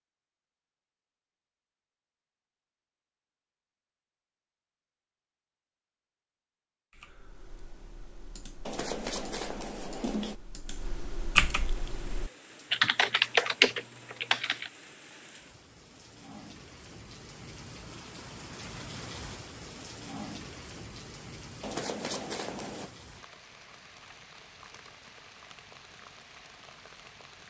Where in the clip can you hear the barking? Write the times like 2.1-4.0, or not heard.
not heard.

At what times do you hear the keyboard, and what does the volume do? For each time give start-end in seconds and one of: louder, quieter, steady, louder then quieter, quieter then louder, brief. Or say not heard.
6.9-14.7 louder.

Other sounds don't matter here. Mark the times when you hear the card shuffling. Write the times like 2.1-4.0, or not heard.
8.7-10.3, 21.6-22.9.